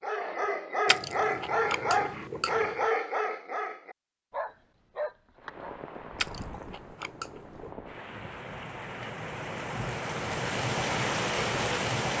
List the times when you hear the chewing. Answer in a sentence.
The chewing can be heard from 0.8 to 2.9 s and from 6.2 to 7.7 s.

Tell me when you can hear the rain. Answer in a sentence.
You can hear the rain from 5.3 to 12.1 s.